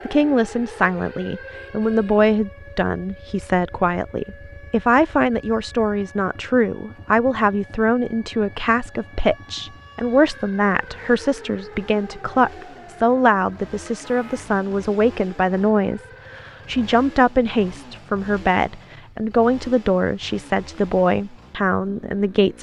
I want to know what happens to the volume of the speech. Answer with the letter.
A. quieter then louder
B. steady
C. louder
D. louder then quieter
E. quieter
B.